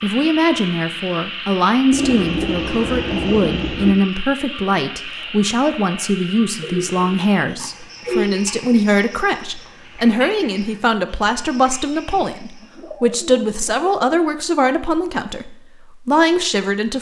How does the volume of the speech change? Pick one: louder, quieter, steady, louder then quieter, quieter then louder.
steady.